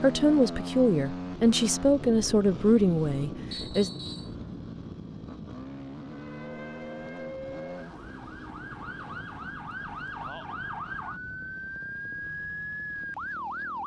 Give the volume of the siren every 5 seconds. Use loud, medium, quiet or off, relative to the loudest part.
off, medium, loud.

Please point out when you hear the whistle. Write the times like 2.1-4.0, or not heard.
3.5-4.3.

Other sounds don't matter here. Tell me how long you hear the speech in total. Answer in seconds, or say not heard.
4 s.